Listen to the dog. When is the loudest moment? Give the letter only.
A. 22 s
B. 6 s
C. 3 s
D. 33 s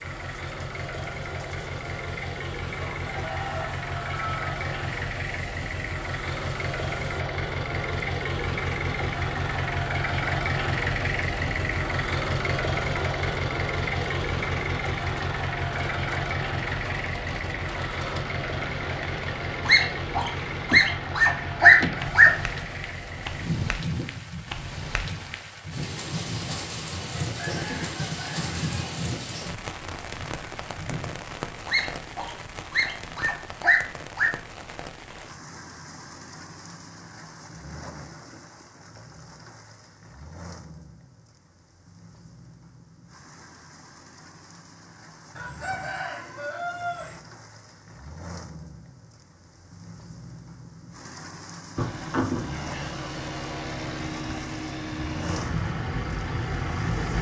A.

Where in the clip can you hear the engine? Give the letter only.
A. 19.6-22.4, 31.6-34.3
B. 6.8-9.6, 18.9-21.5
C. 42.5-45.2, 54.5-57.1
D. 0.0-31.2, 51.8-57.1
D.